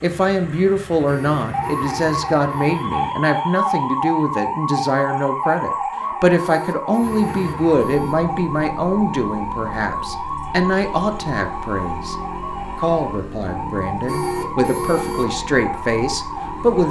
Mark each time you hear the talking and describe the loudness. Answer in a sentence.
You can hear the talking from 0.0 to 12.2 s, at a steady volume; and from 12.8 to 16.8 s, getting louder.